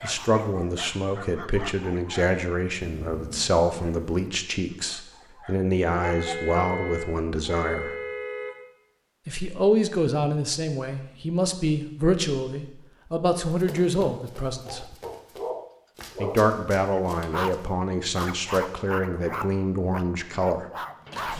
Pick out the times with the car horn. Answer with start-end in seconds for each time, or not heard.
6.0-8.6.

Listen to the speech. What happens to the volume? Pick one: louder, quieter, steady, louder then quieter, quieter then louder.
steady.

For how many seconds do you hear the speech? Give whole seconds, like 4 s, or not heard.
18 s.